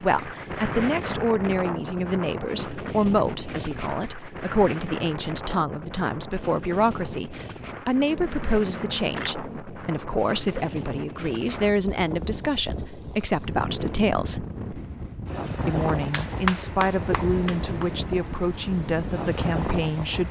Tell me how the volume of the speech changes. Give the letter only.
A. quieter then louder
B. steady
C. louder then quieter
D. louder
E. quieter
B.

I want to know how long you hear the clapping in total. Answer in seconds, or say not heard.
2 s.